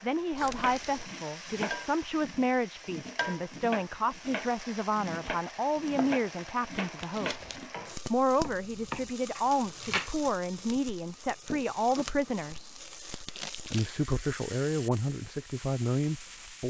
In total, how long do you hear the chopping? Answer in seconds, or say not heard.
10 s.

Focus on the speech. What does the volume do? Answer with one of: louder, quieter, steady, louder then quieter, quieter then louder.
steady.